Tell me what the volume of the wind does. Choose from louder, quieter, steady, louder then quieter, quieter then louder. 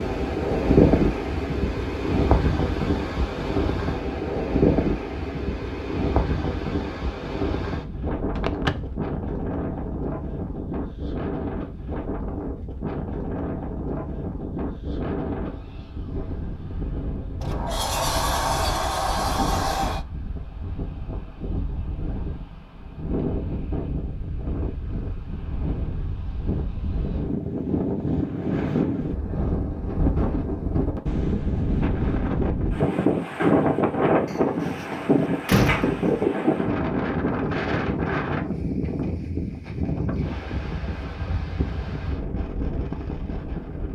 quieter then louder.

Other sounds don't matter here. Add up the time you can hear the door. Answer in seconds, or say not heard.
5 s.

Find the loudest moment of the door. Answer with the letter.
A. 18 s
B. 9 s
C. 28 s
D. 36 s
D.